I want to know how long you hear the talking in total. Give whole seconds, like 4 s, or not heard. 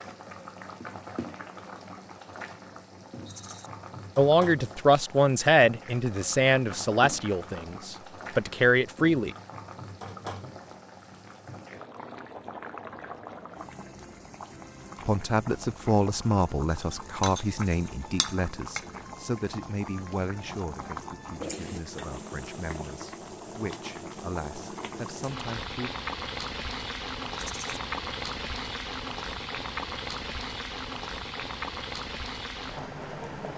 16 s.